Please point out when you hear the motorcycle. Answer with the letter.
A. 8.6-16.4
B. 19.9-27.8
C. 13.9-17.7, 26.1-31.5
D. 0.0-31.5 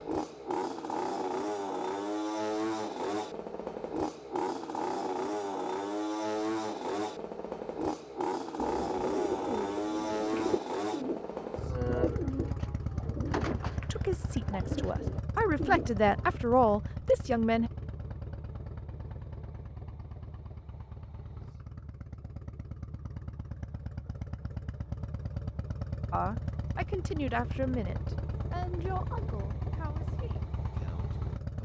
D.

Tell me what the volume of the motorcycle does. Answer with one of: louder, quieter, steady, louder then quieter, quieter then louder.
quieter then louder.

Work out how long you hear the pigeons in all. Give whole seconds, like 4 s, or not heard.
8 s.